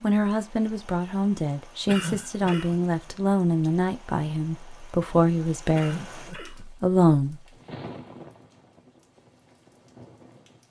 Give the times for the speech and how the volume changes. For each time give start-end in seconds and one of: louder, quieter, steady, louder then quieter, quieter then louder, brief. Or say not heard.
0.0-7.4 steady.